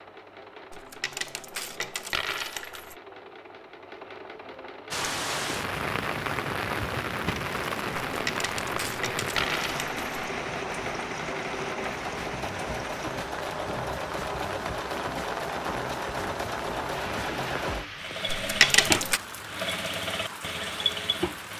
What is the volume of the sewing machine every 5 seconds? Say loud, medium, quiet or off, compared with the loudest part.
quiet, medium, loud, loud, loud.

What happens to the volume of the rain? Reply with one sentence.
The loudness of the rain goes down.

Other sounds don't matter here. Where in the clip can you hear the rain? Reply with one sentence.
You can hear the rain from 4.9 to 21.5 s.